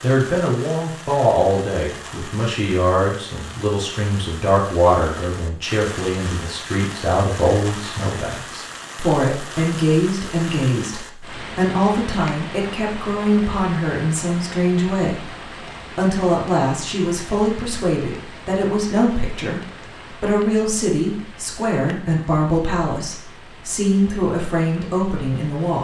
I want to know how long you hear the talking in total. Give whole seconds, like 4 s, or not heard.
25 s.